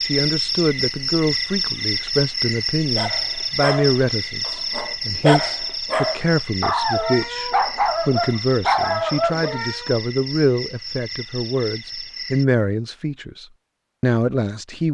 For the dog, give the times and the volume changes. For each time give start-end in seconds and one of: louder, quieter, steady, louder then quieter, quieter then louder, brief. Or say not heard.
3.0-9.9 louder.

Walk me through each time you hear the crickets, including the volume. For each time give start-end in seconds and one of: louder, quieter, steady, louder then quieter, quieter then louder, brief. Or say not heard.
0.0-12.4 quieter.